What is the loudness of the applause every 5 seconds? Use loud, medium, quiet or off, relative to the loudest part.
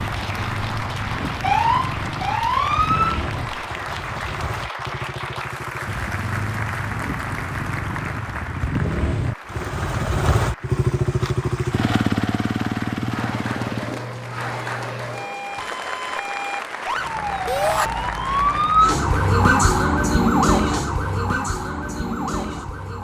loud, loud, loud, loud, off.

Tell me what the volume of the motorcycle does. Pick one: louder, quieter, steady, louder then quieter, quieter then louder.
louder.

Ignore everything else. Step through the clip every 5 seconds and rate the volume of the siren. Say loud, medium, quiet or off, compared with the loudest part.
loud, off, quiet, loud, loud.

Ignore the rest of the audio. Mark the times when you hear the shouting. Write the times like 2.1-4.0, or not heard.
17.4-17.9.